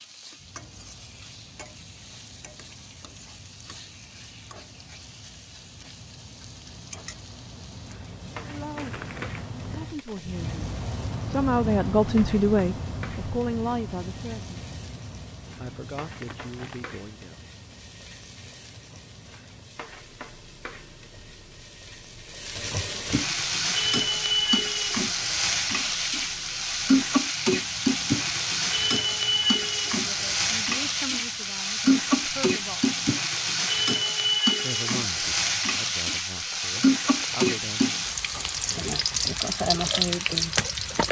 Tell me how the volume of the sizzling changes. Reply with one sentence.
The loudness of the sizzling goes up.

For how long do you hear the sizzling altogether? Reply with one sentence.
The sizzling can be heard for 41 seconds in total.